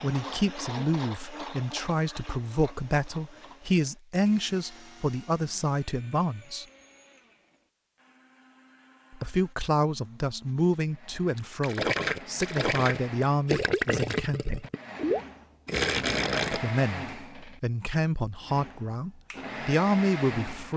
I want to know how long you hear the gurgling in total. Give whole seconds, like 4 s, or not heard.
5 s.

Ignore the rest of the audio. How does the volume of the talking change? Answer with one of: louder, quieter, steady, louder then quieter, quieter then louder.
steady.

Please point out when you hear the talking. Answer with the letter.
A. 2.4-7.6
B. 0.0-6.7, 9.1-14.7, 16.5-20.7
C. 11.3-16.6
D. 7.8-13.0
B.